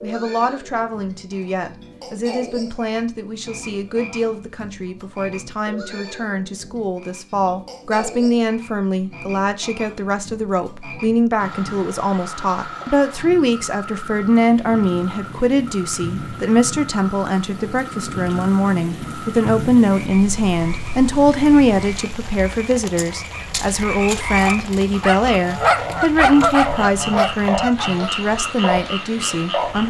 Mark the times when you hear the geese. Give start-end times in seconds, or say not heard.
25.4-28.1.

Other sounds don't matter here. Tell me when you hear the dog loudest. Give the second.
26 s.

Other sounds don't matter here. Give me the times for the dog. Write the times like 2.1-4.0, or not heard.
24.4-27.9.